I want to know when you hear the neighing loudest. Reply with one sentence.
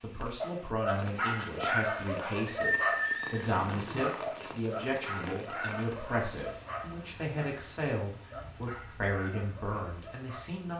The loudest moment of the neighing is at 3 seconds.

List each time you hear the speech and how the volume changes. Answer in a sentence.
The speech can be heard from 0.0 to 10.7 s, at a steady volume.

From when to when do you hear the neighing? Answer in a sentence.
You can hear the neighing from 2.5 to 4.1 s.